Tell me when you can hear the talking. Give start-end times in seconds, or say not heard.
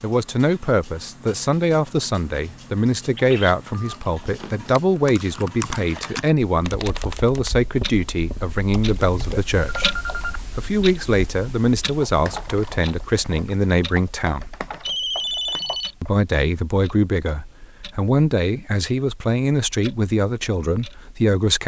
0.0-9.9, 10.6-14.6, 16.0-21.6.